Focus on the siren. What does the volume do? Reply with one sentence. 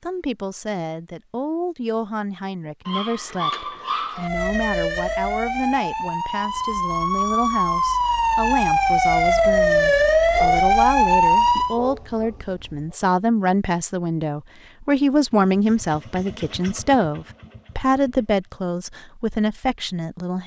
The volume of the siren goes up.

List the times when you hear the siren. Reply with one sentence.
You can hear the siren from 4.2 to 11.8 s.